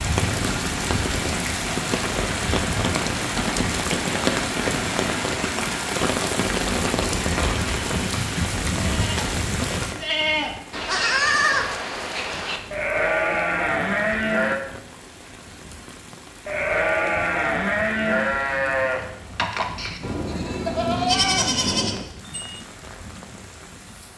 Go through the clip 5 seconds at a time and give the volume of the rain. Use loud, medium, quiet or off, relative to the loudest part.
loud, loud, quiet, quiet, quiet.